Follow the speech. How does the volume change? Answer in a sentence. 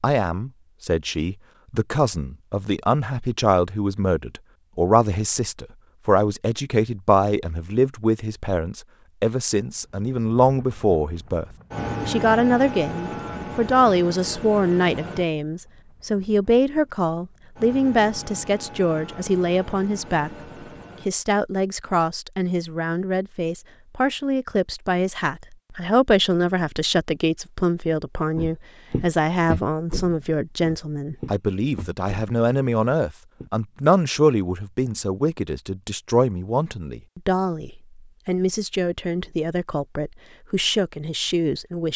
The volume of the speech stays about the same.